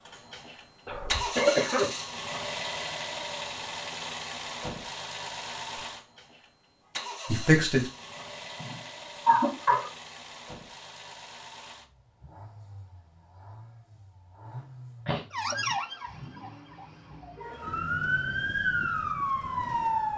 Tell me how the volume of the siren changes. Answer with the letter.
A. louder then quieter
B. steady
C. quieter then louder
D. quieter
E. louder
C.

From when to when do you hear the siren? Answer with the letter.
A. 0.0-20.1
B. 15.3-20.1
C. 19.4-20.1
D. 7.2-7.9
B.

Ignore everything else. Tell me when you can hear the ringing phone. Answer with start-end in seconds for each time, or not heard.
not heard.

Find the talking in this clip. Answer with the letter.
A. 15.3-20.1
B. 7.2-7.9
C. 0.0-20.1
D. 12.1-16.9
B.